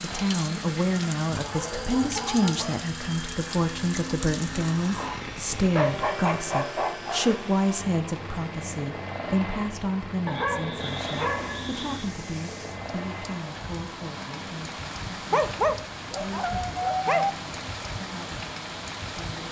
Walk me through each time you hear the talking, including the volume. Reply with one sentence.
The talking can be heard from 0.0 to 19.4 s, getting quieter.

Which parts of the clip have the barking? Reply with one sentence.
The barking can be heard from 0.0 to 2.8 s, from 5.0 to 7.4 s, from 10.2 to 12.1 s and from 15.3 to 17.3 s.